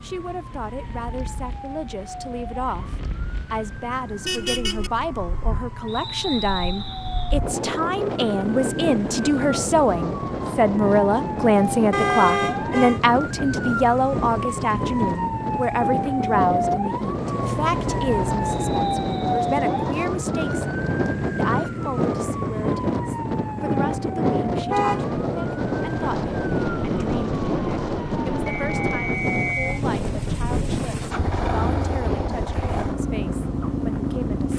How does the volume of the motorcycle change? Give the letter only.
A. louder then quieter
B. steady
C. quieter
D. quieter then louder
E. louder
E.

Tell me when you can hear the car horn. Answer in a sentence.
The car horn can be heard from 4.2 to 4.9 s, from 11.9 to 13.0 s and from 24.7 to 25.2 s.